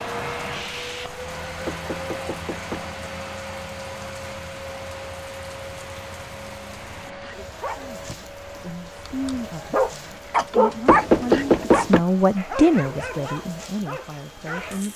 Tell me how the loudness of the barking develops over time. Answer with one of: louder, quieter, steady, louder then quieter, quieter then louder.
louder then quieter.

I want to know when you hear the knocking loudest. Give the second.
11 s.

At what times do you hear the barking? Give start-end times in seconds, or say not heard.
7.2-14.8.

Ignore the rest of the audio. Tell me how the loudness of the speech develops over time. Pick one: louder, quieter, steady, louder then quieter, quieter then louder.
louder then quieter.